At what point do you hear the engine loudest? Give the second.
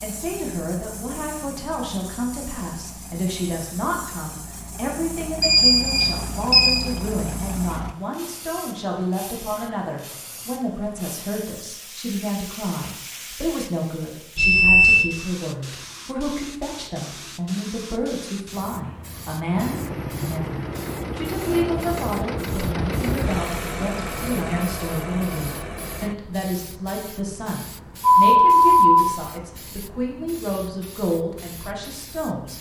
23 s.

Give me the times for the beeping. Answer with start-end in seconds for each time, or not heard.
5.4-6.8, 14.3-15.1, 28.0-29.1.